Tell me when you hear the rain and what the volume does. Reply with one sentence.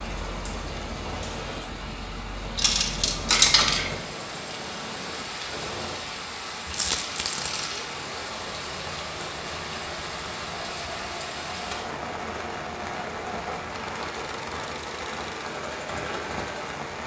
You can hear the rain from 0.0 to 17.0 s, at a steady volume.